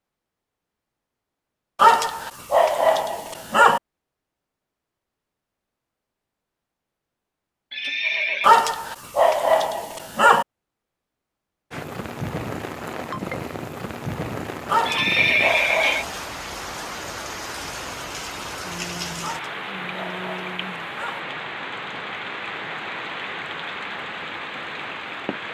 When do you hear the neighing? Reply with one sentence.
You can hear the neighing from 7.7 to 8.5 s and from 14.8 to 16.1 s.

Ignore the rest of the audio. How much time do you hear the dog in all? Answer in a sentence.
You can hear the dog for 8 seconds altogether.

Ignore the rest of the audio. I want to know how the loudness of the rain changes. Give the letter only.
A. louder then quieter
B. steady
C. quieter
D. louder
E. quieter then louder
B.